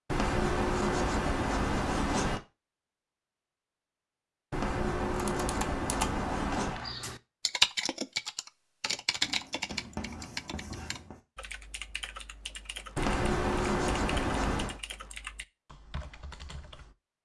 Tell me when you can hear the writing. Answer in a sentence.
You can hear the writing from 0.1 to 2.4 s, from 4.5 to 6.8 s, from 9.2 to 11.2 s and from 12.9 to 14.8 s.